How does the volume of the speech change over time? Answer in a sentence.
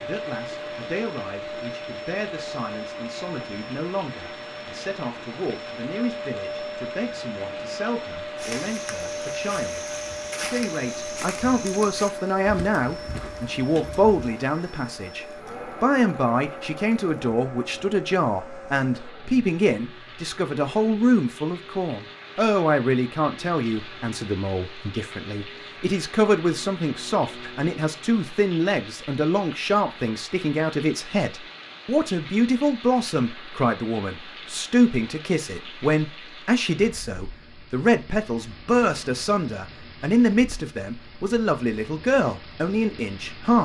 The volume of the speech goes up.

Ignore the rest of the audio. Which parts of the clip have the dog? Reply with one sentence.
The dog can't be heard in this clip.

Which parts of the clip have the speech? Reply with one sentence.
The speech can be heard from 0.0 to 43.6 s.